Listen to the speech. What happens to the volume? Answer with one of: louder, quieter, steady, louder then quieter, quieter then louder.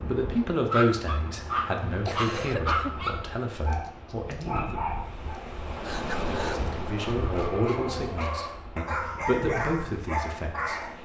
quieter then louder.